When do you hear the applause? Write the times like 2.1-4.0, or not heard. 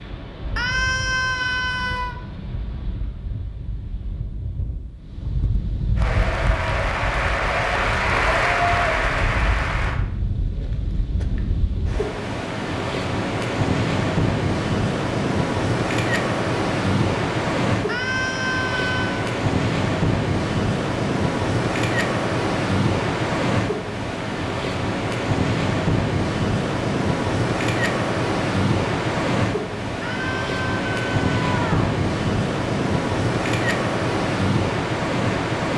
6.0-10.0.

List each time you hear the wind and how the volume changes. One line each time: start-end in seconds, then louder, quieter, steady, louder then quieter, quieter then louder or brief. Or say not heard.
0.0-35.7 louder.